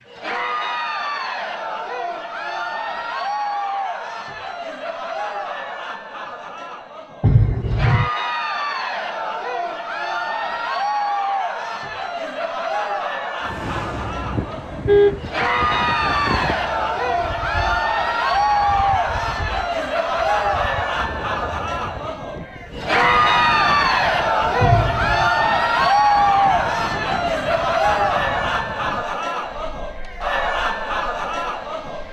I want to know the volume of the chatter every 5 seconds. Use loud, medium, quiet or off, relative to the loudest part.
medium, medium, medium, loud, loud, loud, medium.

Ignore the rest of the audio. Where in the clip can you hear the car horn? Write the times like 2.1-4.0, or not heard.
7.2-8.1, 13.7-15.2, 24.6-25.3.